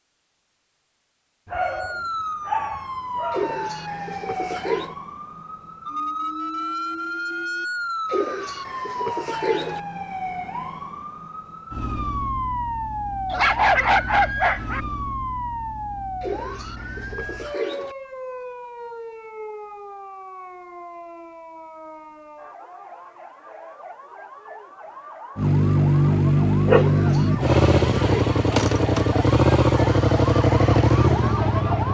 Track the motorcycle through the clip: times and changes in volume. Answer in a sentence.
You can hear the motorcycle from 25.4 to 31.8 s, at a steady volume.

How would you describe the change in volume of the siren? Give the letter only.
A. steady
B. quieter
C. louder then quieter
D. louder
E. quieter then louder
E.